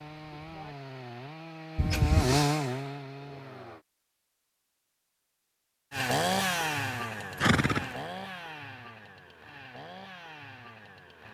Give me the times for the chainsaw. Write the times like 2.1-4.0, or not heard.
0.0-3.9, 5.9-11.2.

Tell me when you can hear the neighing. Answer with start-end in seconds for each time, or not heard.
1.8-2.5, 7.4-7.9.